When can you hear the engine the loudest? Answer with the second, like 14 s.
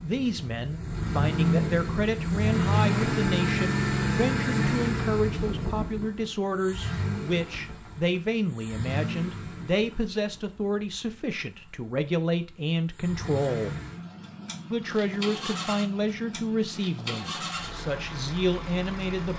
3 s.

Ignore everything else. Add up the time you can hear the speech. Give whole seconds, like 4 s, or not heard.
18 s.